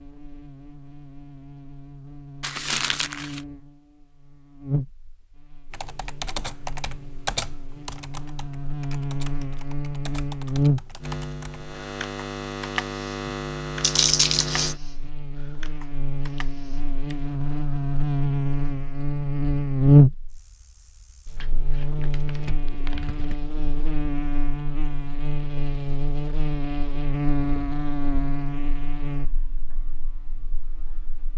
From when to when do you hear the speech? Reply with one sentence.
The speech can't be heard in this clip.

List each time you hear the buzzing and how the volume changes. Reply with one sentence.
You can hear the buzzing from 0.0 to 31.3 s, getting louder then quieter.